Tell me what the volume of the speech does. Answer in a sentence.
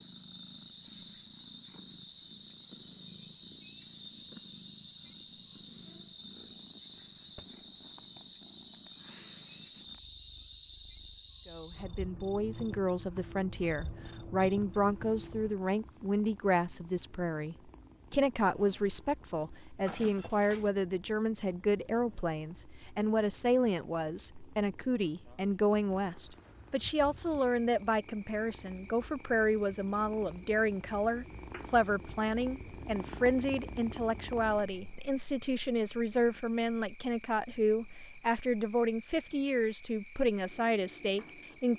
The loudness of the speech stays about the same.